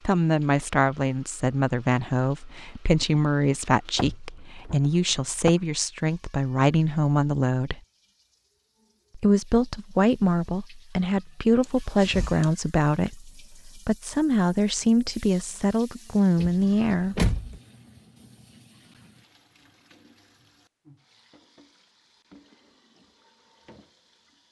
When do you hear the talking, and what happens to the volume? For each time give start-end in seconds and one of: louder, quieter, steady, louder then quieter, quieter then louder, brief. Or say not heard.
0.1-7.8 steady
9.2-17.2 steady.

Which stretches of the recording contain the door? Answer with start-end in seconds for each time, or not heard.
4.0-4.8, 11.6-12.5, 16.4-17.6.